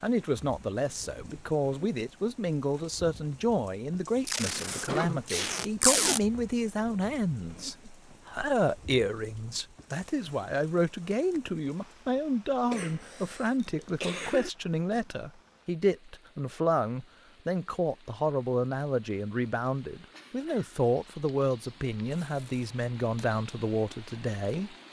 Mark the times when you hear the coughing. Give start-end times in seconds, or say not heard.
4.8-5.2, 12.7-14.5, 20.1-20.8.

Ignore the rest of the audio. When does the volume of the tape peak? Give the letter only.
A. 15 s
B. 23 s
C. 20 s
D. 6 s
D.